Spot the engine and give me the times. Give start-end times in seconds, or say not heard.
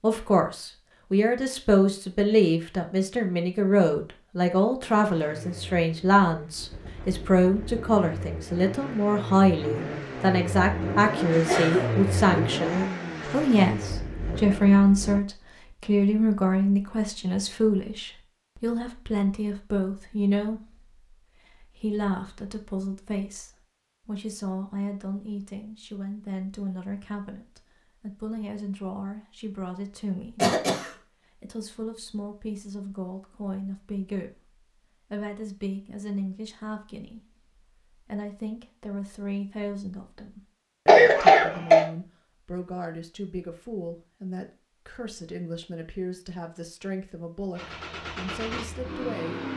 4.8-15.2, 47.5-49.5.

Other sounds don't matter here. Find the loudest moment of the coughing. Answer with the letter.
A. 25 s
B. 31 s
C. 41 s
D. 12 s
C.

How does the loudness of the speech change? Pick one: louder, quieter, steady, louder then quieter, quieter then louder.
quieter.